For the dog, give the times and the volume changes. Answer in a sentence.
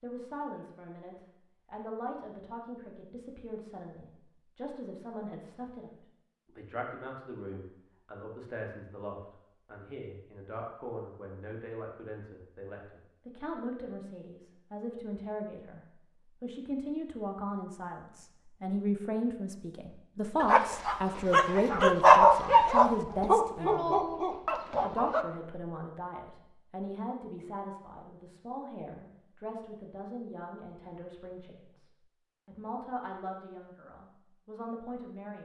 You can hear the dog from 20.4 to 25.2 s, getting louder then quieter.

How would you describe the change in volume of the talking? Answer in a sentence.
The volume of the talking goes up, then down.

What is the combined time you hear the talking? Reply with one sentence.
You can hear the talking for 35 seconds altogether.